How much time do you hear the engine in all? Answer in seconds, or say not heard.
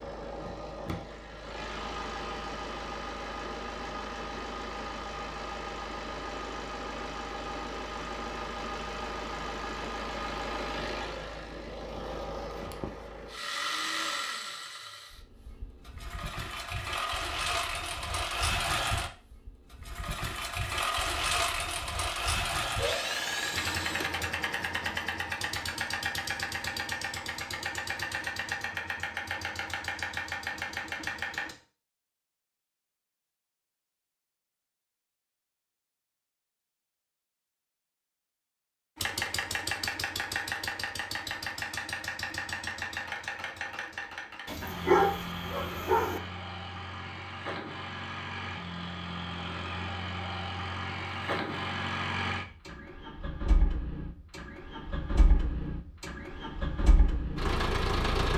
51 s.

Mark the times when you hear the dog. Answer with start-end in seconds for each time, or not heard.
44.5-46.2.